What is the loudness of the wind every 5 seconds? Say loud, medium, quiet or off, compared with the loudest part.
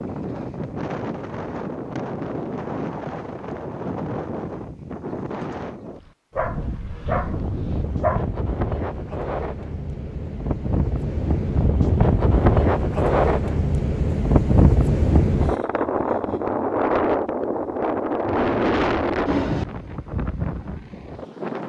medium, medium, loud, loud, medium.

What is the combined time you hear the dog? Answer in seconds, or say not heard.
2 s.